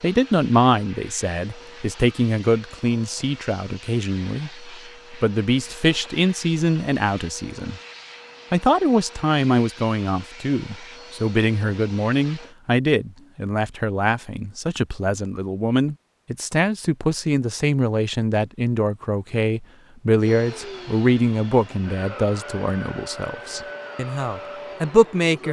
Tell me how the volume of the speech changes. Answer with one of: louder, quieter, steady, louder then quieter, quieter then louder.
steady.